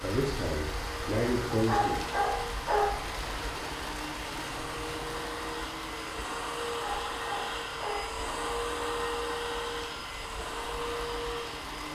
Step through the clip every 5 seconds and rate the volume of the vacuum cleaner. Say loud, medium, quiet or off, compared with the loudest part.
medium, loud, loud.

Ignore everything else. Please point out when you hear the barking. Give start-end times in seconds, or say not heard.
1.5-3.0, 6.8-8.2.